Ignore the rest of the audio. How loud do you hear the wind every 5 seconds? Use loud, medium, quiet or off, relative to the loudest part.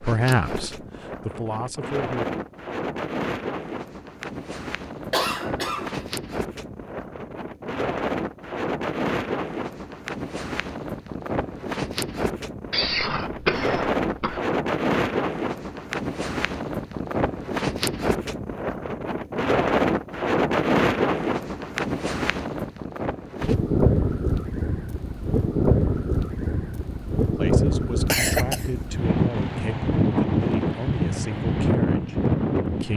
medium, medium, medium, loud, loud, loud, loud.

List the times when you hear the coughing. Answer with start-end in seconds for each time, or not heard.
5.1-6.1, 12.7-14.4, 28.1-28.7.